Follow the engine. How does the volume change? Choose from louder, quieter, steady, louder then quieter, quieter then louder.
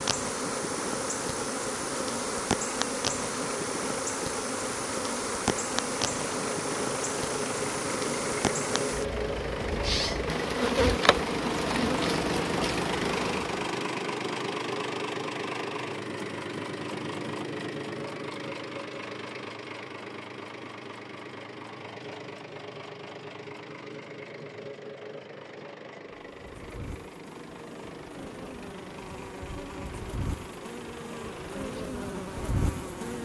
louder then quieter.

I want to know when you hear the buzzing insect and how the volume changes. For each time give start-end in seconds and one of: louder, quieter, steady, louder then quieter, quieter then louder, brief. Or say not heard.
0.0-13.6 steady
26.2-33.2 louder.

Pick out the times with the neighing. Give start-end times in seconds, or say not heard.
not heard.